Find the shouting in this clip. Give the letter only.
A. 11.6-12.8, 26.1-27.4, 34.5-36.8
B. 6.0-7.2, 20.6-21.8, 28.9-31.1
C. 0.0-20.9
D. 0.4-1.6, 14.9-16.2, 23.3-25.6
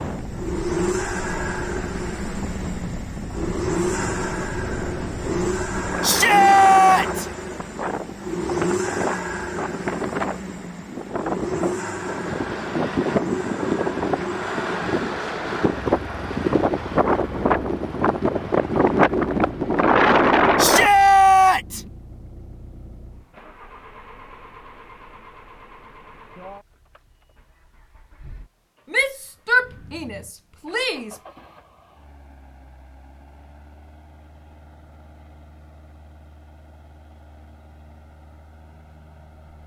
B.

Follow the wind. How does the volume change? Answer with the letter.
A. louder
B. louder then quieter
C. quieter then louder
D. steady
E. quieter
A.